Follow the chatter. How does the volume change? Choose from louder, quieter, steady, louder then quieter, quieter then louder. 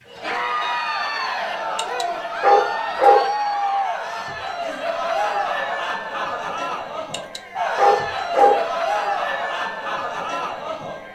steady.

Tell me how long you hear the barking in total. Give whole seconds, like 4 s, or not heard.
3 s.